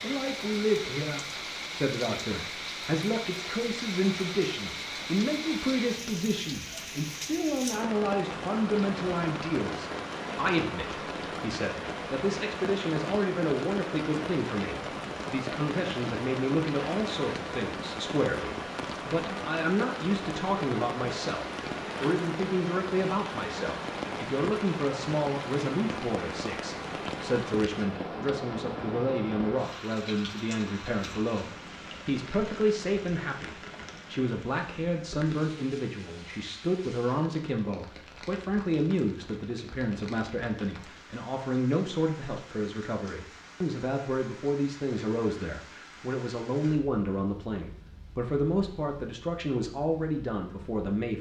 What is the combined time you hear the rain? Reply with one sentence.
You can hear the rain for 51 seconds altogether.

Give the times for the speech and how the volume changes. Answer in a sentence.
You can hear the speech from 0.0 to 51.1 s, at a steady volume.